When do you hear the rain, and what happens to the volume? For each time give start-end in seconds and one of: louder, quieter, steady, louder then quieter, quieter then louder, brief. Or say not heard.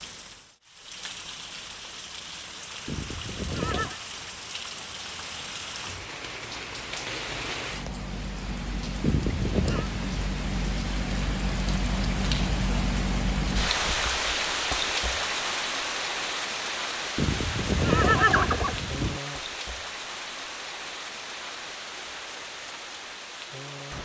0.0-23.9 louder then quieter.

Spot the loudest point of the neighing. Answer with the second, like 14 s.
18 s.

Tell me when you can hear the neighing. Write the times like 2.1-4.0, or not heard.
2.9-4.0, 9.0-9.9, 17.1-19.2.